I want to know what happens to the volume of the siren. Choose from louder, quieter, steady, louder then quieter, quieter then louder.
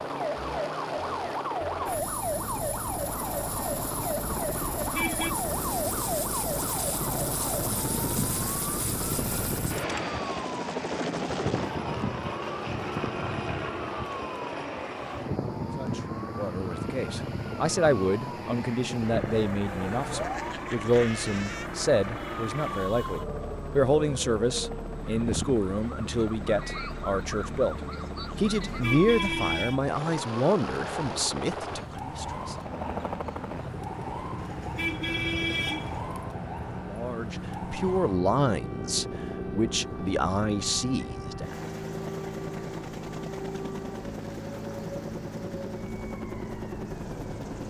quieter.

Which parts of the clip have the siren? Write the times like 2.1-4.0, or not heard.
0.0-47.5.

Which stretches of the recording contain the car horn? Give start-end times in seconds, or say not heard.
4.8-5.3, 28.6-29.8, 34.4-36.0.